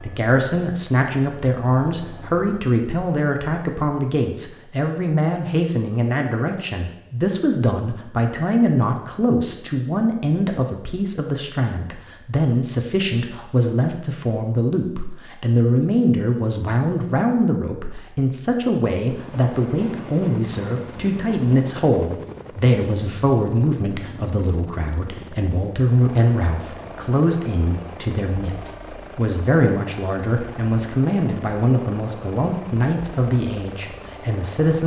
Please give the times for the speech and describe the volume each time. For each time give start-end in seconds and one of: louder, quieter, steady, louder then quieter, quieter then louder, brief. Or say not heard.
0.0-34.8 steady.